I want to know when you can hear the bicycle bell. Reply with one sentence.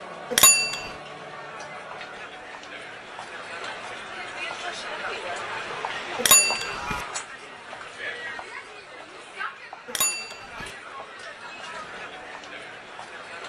You can hear the bicycle bell from 0.3 to 0.9 s, from 6.2 to 7.0 s and from 9.8 to 10.7 s.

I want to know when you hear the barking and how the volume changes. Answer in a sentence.
You can't hear the barking here.